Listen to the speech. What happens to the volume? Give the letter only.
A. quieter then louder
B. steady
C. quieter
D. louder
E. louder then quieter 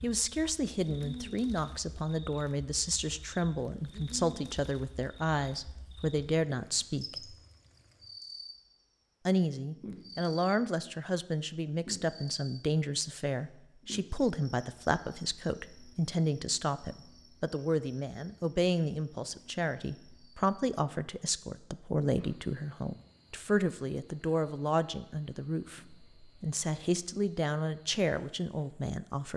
B.